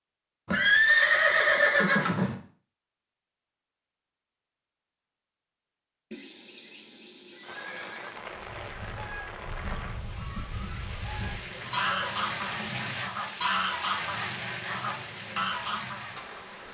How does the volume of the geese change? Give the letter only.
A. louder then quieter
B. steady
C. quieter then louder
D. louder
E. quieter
D.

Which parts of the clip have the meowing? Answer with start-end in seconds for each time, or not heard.
not heard.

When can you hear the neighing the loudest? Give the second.
1 s.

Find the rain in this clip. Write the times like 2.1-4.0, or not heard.
7.4-16.6.